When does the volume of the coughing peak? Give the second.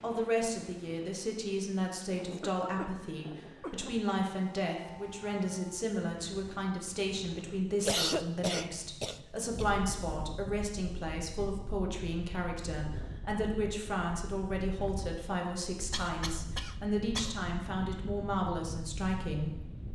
8 s.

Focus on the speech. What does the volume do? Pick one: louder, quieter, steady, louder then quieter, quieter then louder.
steady.